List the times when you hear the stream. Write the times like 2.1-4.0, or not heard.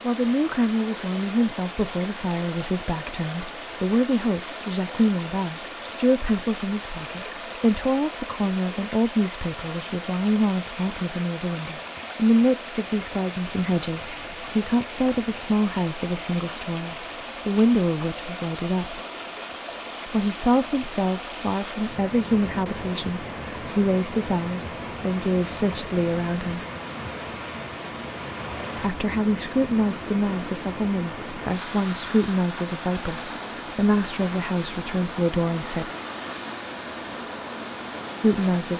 0.0-38.7.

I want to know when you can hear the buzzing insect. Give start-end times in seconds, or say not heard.
not heard.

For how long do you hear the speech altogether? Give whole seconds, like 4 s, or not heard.
33 s.